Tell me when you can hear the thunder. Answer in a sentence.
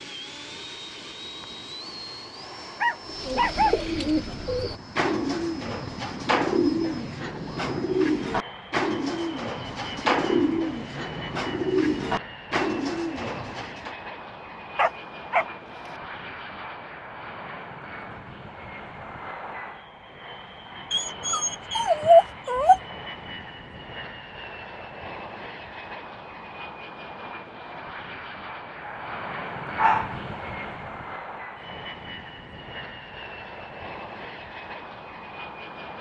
The thunder can't be heard in this clip.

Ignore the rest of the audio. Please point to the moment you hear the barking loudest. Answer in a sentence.
The loudest moment of the barking is at 22 seconds.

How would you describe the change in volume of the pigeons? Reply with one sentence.
The volume of the pigeons stays about the same.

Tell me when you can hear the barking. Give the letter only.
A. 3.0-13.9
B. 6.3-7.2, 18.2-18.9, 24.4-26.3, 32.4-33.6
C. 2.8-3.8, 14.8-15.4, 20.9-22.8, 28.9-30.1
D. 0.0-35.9
C.